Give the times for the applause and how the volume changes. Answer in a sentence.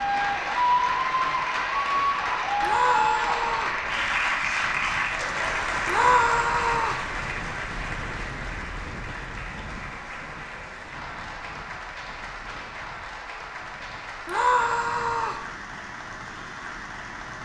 You can hear the applause from 0.0 to 17.4 s, getting quieter.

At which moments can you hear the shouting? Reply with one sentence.
You can hear the shouting from 2.6 to 3.8 s, from 5.8 to 7.0 s and from 14.2 to 15.4 s.